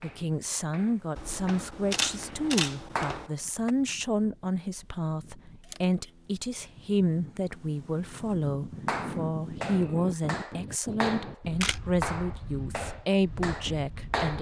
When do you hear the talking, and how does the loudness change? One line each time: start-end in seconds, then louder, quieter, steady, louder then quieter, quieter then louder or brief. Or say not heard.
0.0-14.3 steady.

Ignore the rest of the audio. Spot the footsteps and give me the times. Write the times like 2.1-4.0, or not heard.
not heard.